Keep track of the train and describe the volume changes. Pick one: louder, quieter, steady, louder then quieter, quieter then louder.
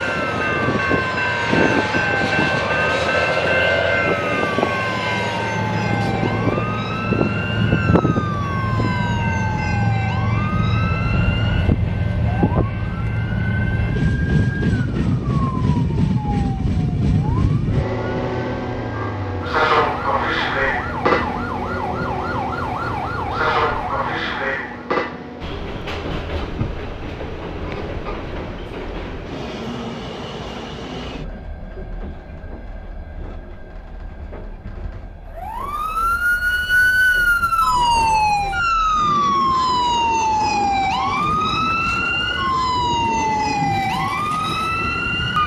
quieter.